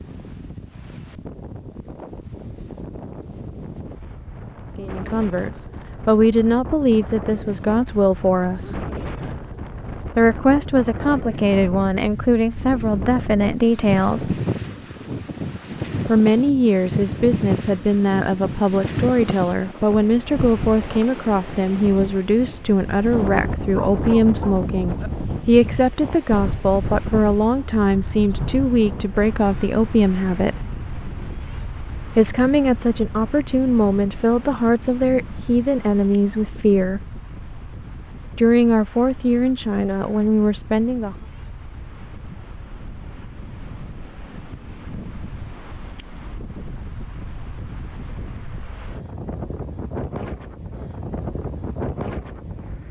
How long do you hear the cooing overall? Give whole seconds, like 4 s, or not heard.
not heard.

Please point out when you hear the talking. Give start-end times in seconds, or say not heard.
4.8-8.8, 10.2-14.3, 16.1-30.6, 32.1-37.0, 38.4-41.1.